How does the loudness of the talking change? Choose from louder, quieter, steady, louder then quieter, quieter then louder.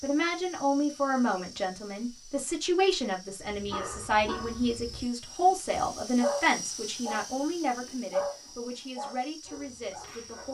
quieter.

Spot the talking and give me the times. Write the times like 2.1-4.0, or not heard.
0.0-10.4.